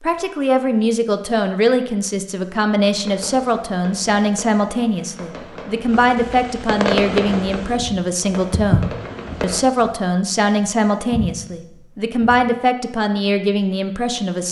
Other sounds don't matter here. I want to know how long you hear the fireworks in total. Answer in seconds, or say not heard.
7 s.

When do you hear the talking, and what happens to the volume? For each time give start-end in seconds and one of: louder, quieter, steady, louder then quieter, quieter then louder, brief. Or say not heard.
0.0-14.4 steady.